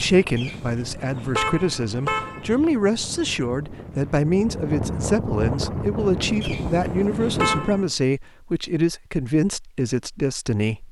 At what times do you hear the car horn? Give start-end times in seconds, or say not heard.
0.3-2.5, 6.4-7.8.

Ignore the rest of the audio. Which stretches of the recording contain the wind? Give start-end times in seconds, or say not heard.
0.0-8.0.